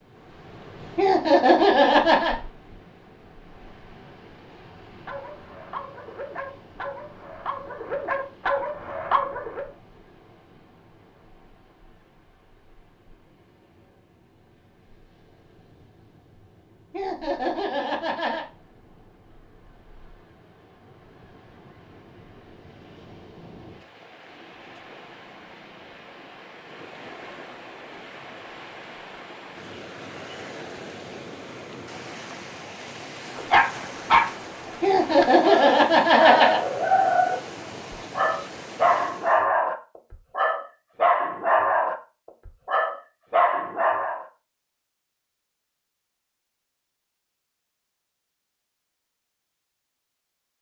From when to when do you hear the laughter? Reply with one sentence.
The laughter can be heard from 0.9 to 2.4 s, from 16.9 to 18.4 s and from 34.8 to 36.6 s.